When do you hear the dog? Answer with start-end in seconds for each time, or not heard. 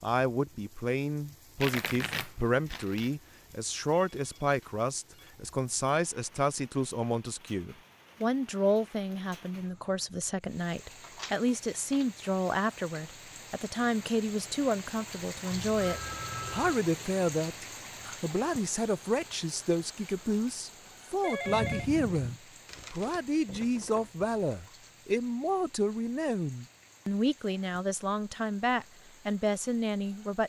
not heard.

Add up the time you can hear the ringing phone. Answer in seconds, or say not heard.
4 s.